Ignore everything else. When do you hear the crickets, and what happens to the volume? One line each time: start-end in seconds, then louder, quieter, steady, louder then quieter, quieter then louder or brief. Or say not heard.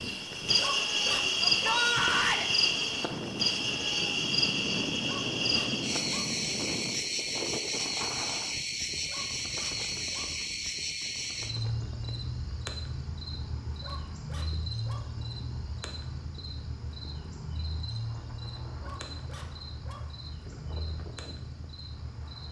0.0-22.4 quieter.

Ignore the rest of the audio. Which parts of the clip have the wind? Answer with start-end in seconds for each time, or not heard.
0.0-22.4.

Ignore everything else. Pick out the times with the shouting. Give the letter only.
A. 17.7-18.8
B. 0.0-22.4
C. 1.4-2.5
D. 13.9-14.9
C.